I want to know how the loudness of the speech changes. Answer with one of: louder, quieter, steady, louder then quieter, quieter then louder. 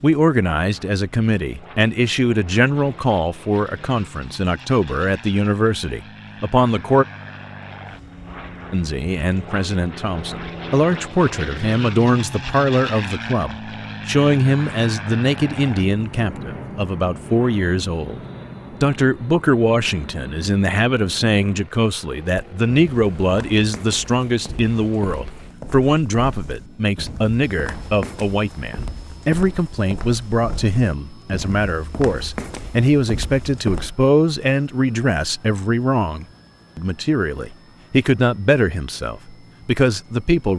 steady.